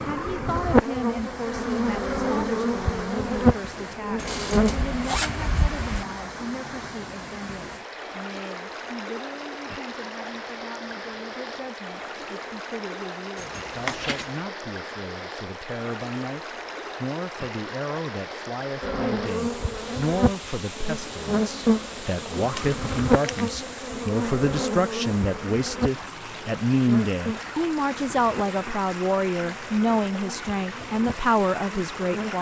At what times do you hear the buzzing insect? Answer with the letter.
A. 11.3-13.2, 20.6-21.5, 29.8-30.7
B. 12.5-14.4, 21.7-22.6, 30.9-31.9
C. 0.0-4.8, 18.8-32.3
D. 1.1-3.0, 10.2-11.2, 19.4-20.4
C.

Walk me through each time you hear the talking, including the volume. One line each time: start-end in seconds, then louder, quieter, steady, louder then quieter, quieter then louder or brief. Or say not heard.
0.1-32.3 quieter then louder.